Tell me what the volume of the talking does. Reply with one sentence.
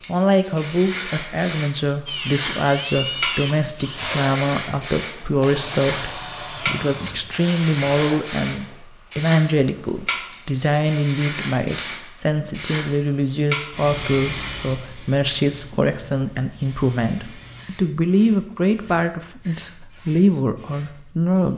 The volume of the talking stays about the same.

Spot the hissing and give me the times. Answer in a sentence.
The hissing can be heard from 0.0 to 21.5 s.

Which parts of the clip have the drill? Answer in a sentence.
You can hear the drill from 2.0 to 8.8 s.